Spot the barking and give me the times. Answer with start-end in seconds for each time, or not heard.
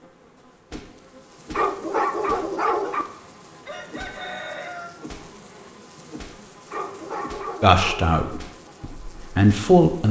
1.5-3.0, 6.7-8.2.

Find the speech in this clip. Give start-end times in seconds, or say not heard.
7.6-10.0.